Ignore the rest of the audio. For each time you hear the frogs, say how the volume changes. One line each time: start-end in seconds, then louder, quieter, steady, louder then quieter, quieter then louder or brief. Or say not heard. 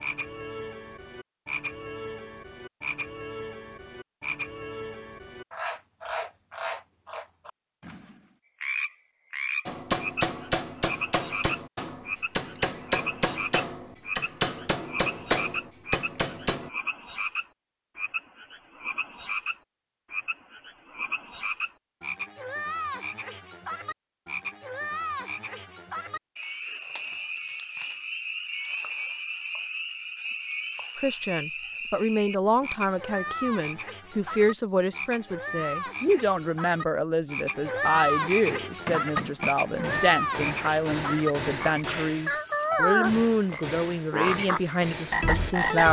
0.0-45.8 louder.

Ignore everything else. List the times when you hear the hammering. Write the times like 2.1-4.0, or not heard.
9.7-16.7, 38.5-45.5.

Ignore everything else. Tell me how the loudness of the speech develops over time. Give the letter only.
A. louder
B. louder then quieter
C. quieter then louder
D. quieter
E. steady
E.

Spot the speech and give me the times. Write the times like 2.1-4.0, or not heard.
30.9-45.8.